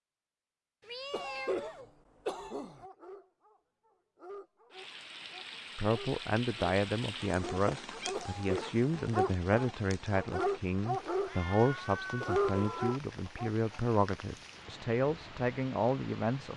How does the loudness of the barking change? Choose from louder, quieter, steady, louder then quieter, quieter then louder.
louder.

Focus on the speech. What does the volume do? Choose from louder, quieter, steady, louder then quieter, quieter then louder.
steady.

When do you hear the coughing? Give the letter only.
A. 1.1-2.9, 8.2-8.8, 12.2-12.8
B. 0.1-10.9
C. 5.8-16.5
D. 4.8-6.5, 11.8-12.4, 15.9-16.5
A.